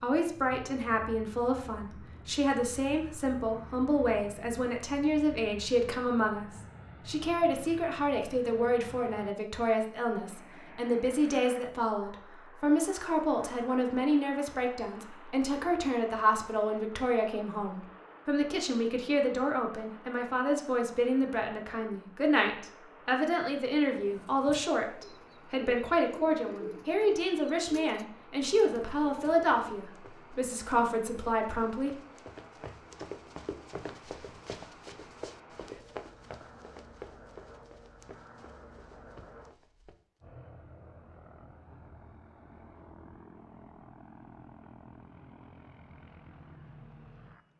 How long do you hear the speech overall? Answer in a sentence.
You can hear the speech for 32 seconds altogether.